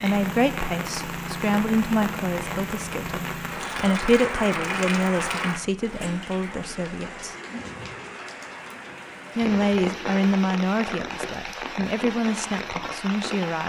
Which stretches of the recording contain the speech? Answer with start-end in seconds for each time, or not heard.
0.0-7.3, 9.3-13.6.